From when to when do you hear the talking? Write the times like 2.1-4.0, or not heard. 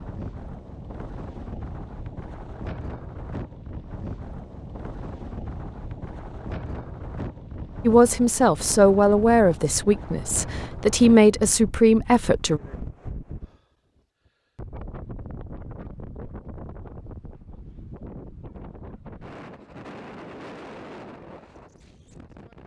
7.8-12.6.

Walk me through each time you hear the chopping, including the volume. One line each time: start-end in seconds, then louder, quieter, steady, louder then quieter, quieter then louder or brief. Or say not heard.
not heard.